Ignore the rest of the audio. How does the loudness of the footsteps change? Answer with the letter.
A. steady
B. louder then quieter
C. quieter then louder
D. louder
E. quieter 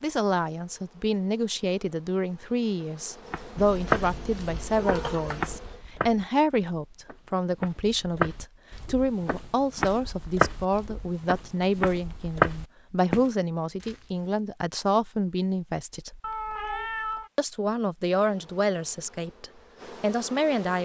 C.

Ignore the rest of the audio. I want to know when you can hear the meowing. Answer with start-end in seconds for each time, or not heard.
3.5-5.6, 16.2-17.3.